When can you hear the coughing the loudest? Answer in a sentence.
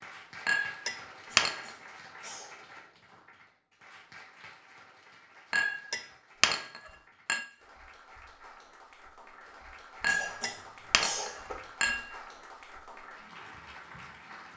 The volume of the coughing peaks at 11 seconds.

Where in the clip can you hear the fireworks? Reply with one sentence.
The fireworks can't be heard in this clip.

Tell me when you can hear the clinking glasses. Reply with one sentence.
The clinking glasses can be heard from 0.5 to 1.7 s, from 5.5 to 7.5 s and from 10.0 to 12.2 s.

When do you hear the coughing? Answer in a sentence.
You can hear the coughing from 1.2 to 2.5 s and from 10.1 to 11.6 s.